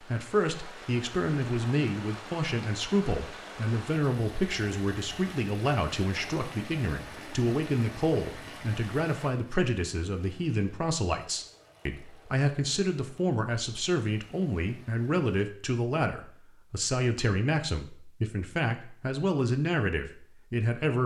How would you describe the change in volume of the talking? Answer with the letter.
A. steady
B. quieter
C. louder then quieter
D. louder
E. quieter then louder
A.